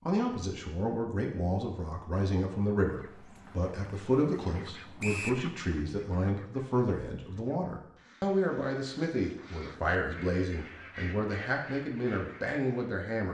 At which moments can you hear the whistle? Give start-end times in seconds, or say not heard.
5.0-5.4.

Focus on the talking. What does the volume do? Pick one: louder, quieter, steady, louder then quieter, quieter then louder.
steady.